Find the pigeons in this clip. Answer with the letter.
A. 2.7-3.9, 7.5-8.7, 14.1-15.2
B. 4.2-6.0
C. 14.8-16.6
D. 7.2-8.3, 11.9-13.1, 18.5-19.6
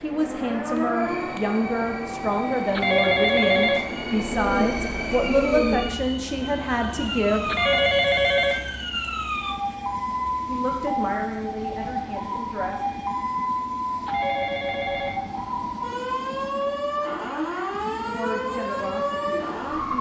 B.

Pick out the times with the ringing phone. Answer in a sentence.
The ringing phone can be heard from 2.7 to 3.9 s, from 7.5 to 8.7 s and from 14.1 to 15.2 s.